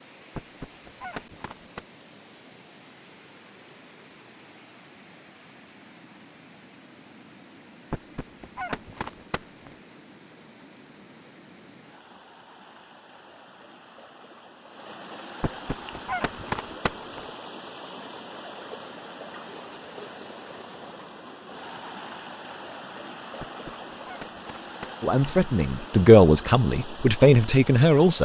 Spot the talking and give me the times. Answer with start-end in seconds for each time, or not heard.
25.0-28.2.